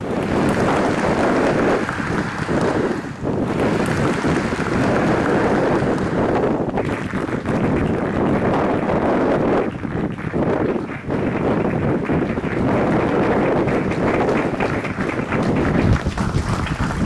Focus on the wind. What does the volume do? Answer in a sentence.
The loudness of the wind stays about the same.